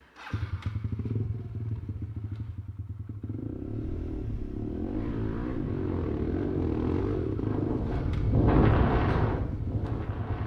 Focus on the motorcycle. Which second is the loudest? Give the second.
7 s.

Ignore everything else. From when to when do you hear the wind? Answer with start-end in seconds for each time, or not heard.
3.6-10.4.